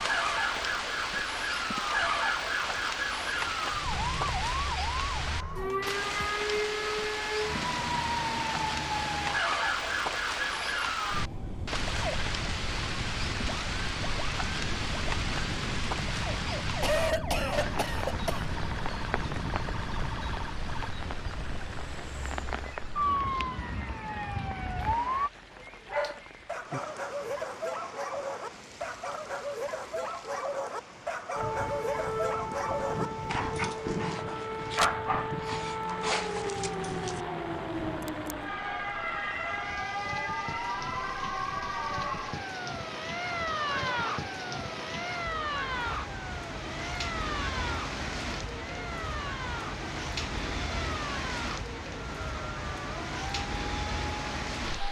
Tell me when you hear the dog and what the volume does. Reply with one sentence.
You can hear the dog from 25.5 to 37.2 s, at a steady volume.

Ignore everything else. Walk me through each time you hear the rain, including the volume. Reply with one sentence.
You can hear the rain from 0.0 to 54.8 s, getting quieter then louder.